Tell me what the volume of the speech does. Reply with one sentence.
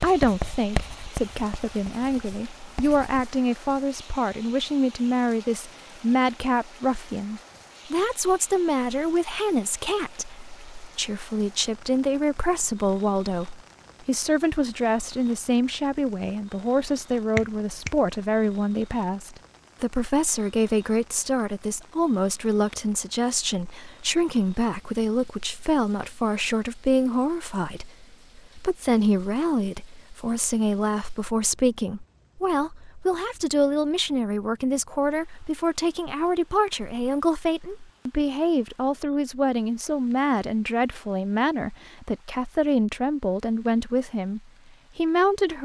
The loudness of the speech stays about the same.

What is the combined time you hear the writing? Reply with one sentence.
You can hear the writing for 3 seconds altogether.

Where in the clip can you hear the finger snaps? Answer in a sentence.
You can hear the finger snaps from 17.4 to 17.9 s.